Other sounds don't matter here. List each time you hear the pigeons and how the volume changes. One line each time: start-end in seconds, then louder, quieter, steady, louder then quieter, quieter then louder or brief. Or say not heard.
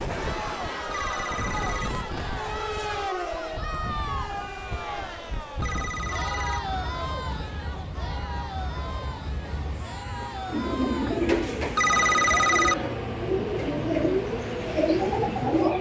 10.4-15.7 quieter then louder.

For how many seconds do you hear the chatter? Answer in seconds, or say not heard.
13 s.